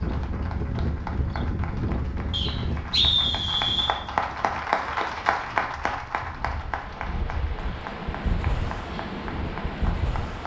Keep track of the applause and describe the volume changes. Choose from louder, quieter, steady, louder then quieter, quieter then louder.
louder then quieter.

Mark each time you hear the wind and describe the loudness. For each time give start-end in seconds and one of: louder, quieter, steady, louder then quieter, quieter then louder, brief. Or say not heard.
0.0-10.4 quieter then louder.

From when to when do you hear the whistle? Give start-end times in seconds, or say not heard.
2.3-4.0.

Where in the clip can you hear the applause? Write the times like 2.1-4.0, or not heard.
0.0-10.4.